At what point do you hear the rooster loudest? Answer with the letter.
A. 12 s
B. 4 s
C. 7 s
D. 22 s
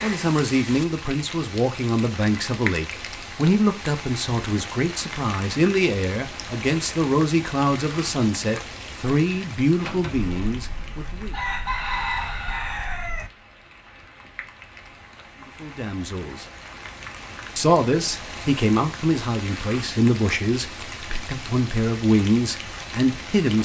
A.